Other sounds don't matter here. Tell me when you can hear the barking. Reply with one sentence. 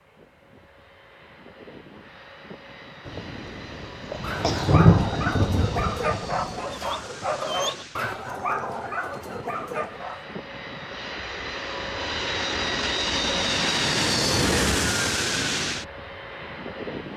You can hear the barking from 4.2 to 10.4 s.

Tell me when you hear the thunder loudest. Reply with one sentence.
The volume of the thunder peaks at 5 seconds.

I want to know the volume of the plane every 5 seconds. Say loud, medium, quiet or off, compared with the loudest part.
quiet, quiet, loud, loud.